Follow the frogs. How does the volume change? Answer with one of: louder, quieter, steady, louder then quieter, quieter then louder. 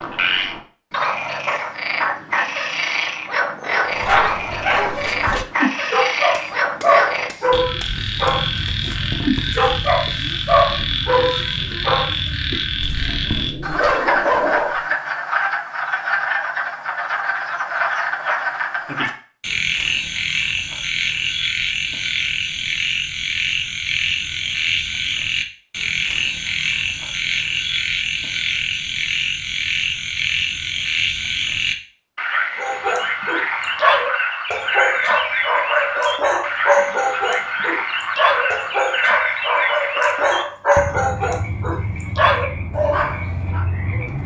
steady.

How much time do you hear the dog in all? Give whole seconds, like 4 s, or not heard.
22 s.